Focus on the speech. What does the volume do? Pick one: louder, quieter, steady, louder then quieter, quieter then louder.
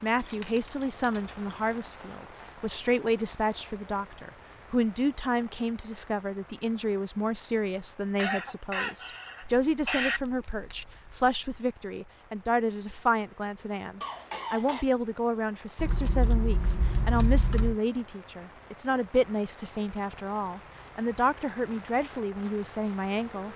steady.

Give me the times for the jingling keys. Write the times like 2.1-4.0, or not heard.
0.2-1.2, 9.4-11.3, 15.8-17.8.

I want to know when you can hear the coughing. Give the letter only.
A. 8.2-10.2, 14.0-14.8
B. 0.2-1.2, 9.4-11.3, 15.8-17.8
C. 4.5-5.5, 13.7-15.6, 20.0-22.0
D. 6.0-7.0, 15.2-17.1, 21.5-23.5
A.